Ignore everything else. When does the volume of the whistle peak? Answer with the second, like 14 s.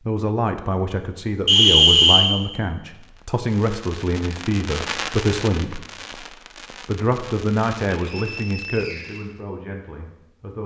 2 s.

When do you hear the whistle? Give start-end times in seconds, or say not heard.
1.4-2.3, 7.9-9.2.